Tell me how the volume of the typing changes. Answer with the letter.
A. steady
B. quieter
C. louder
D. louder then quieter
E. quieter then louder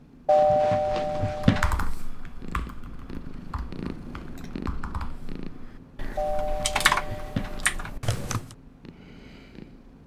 E.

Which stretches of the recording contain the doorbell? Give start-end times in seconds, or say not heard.
0.2-1.8, 6.2-7.9.